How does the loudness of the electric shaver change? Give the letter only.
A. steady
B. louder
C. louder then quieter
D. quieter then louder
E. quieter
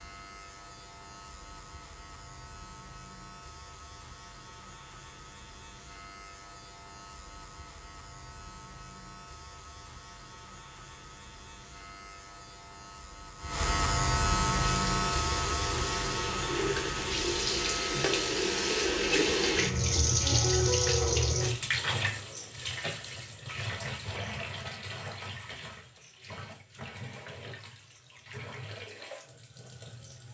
C.